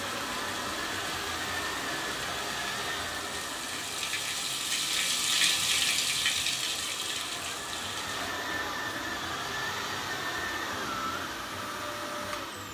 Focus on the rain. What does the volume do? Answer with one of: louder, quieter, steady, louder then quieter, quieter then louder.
louder then quieter.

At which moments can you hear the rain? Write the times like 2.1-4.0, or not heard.
0.0-8.3.